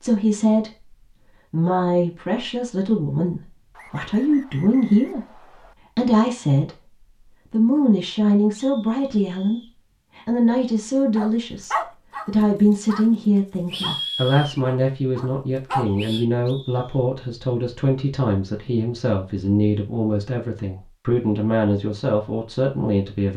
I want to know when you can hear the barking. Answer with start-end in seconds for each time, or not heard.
11.2-13.1, 13.7-16.2.